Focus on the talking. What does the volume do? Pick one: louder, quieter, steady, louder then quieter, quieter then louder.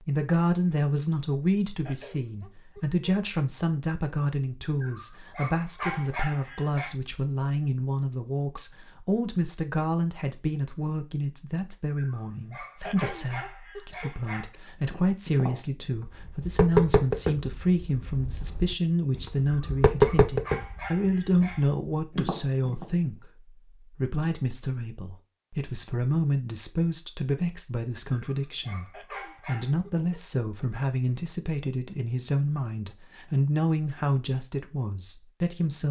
steady.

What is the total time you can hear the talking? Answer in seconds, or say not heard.
36 s.